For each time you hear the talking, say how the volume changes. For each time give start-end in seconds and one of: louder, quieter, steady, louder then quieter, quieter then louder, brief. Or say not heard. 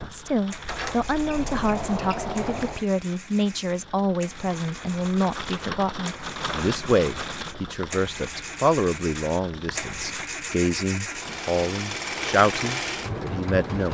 0.1-13.9 steady.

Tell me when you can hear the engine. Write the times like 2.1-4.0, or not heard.
0.5-13.9.